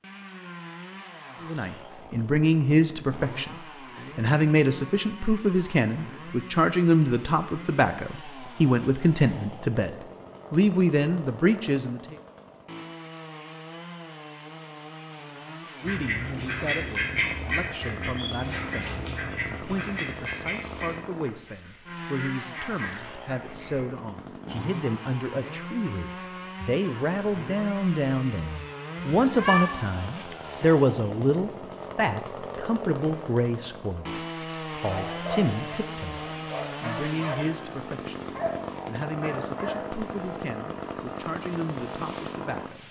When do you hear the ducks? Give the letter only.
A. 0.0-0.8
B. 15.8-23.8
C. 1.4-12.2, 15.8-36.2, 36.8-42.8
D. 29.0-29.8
B.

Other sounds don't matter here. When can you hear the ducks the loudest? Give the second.
17 s.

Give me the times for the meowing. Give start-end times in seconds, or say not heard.
29.0-29.8.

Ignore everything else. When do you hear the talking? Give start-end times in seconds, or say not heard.
1.4-12.2, 15.8-36.2, 36.8-42.8.